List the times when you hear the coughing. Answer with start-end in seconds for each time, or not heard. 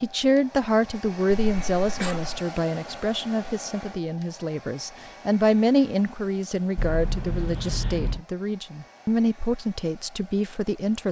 1.3-2.4, 6.8-8.2.